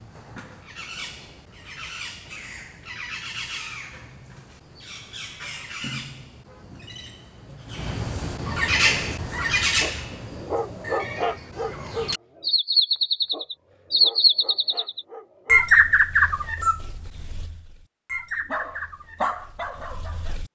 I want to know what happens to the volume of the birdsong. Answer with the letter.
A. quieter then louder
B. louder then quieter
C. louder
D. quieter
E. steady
B.